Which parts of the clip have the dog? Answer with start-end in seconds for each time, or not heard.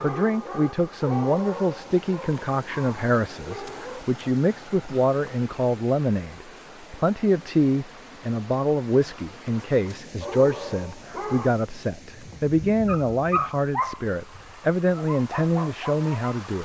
0.0-4.0, 10.2-16.4.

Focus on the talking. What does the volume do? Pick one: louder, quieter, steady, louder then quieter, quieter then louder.
steady.